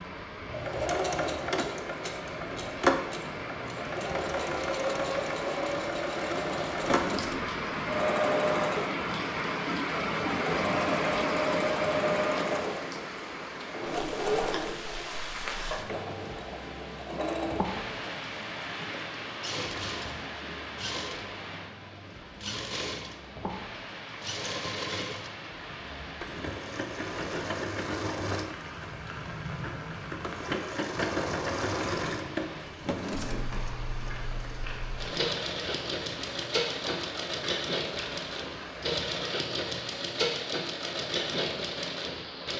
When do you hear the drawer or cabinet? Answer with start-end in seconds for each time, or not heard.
6.7-7.5, 32.6-33.8.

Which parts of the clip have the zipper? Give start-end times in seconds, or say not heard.
not heard.